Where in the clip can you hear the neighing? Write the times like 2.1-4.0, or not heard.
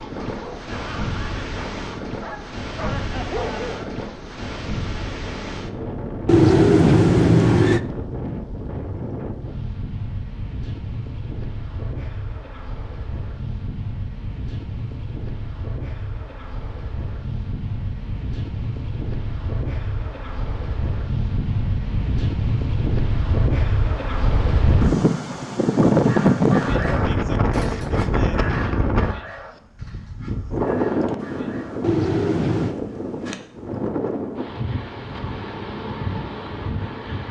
6.2-7.8, 31.8-32.8.